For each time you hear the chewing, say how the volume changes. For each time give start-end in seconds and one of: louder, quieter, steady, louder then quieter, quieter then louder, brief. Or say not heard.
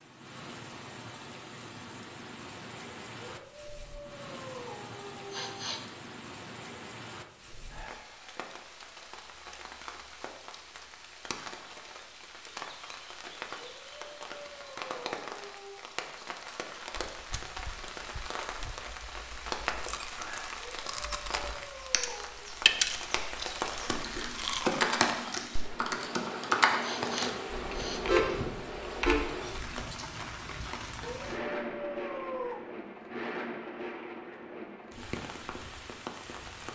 16.9-24.9 louder then quieter.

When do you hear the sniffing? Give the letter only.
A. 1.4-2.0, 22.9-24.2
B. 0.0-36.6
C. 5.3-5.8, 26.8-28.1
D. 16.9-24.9
C.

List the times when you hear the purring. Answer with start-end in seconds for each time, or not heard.
not heard.